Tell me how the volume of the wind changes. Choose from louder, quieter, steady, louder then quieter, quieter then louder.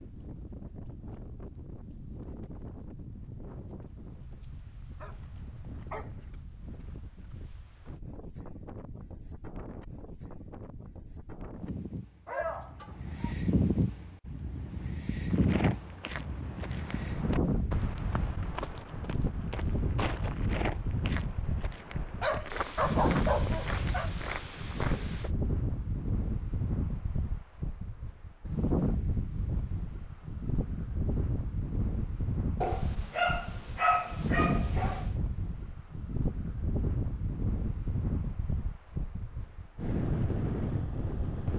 louder.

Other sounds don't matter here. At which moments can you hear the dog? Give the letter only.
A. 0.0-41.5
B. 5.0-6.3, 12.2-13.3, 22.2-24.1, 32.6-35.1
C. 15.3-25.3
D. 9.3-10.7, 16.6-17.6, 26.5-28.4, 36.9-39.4
B.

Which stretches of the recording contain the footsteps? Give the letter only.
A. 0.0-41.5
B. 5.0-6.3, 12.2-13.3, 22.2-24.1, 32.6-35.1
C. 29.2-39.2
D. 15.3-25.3
D.